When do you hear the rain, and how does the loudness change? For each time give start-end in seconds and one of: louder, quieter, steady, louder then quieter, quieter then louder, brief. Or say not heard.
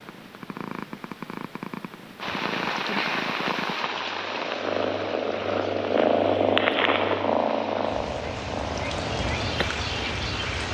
2.2-10.6 quieter then louder.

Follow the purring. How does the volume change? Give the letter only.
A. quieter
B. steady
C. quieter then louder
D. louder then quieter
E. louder
D.